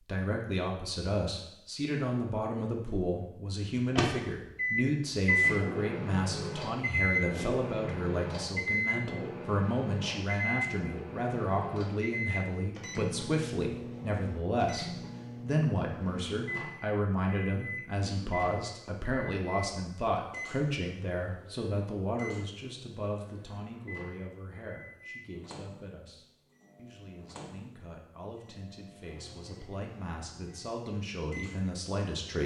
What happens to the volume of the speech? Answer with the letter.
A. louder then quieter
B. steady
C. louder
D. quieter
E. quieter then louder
D.